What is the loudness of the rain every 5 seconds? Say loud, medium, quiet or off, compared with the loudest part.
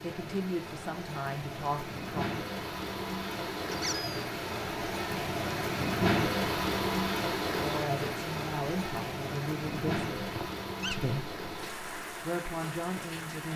medium, loud, medium.